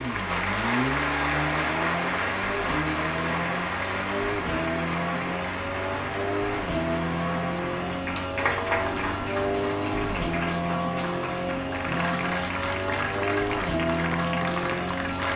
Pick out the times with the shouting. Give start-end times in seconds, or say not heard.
not heard.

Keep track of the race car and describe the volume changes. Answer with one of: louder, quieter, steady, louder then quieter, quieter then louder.
steady.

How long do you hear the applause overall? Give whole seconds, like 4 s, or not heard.
15 s.